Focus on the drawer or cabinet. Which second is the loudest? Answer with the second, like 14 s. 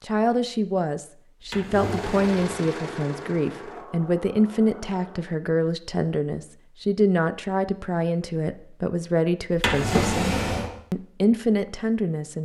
10 s.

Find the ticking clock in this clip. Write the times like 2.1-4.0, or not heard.
not heard.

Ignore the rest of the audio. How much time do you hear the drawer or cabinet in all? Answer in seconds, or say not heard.
2 s.